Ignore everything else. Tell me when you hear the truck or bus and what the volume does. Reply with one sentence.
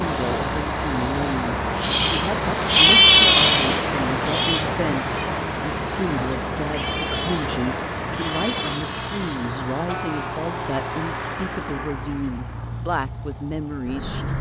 You can hear the truck or bus from 0.0 to 14.3 s, getting quieter.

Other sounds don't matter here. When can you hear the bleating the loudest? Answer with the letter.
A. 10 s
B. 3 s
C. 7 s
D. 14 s
B.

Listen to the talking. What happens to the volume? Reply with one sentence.
The volume of the talking stays about the same.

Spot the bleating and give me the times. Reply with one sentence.
You can hear the bleating from 1.8 to 10.4 s.